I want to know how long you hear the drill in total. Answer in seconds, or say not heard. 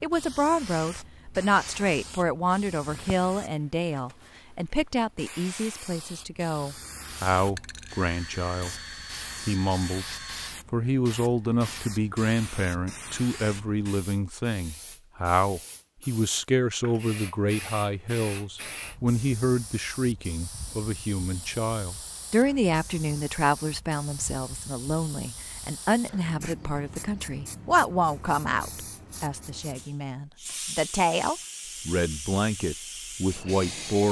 3 s.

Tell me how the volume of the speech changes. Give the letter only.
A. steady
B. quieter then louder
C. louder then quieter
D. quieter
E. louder
A.